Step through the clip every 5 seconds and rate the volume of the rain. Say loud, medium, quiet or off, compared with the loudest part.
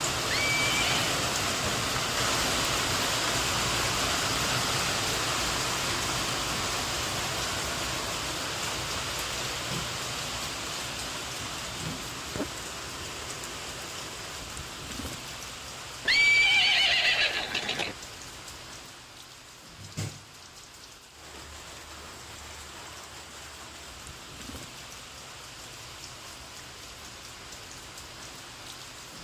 loud, loud, medium, quiet, quiet, quiet.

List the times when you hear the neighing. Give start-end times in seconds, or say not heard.
0.2-1.1, 16.1-17.9.